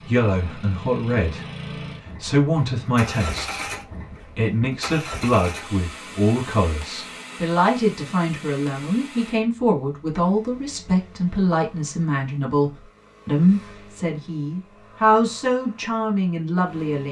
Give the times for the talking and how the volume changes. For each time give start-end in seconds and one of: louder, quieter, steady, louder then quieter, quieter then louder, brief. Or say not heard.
0.0-17.0 steady.